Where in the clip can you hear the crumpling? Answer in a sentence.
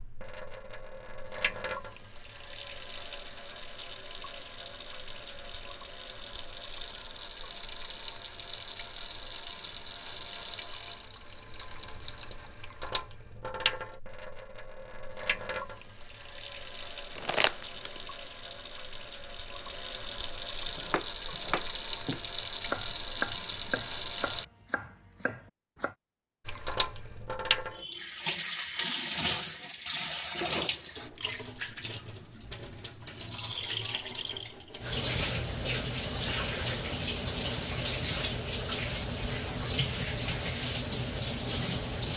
The crumpling can be heard from 17.1 to 18.0 s.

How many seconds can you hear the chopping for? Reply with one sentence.
You can hear the chopping for 5 seconds altogether.